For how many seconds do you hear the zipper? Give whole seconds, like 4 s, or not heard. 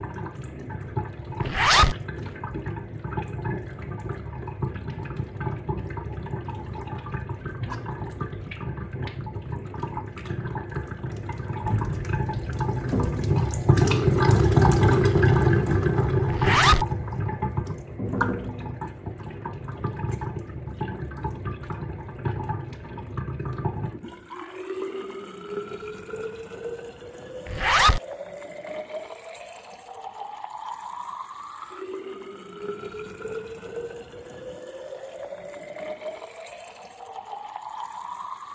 2 s.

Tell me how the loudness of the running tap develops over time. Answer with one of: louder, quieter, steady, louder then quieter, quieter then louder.
louder then quieter.